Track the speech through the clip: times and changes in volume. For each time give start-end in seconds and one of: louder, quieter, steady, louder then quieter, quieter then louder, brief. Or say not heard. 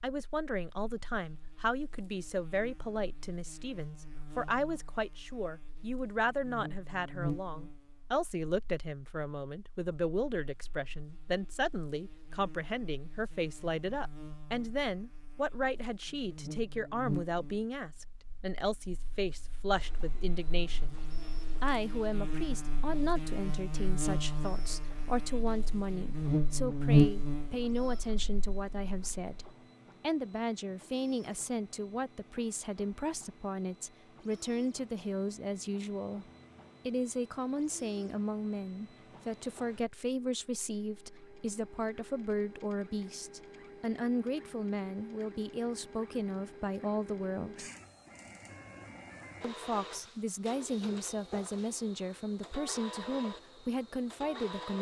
0.0-20.9 steady
21.6-36.2 steady
36.9-47.6 steady
49.4-54.7 steady.